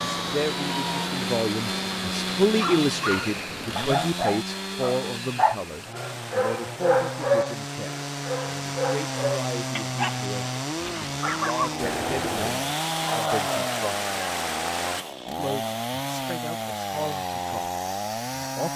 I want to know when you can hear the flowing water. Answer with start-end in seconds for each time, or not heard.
0.0-15.1.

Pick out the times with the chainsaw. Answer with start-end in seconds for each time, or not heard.
0.0-18.7.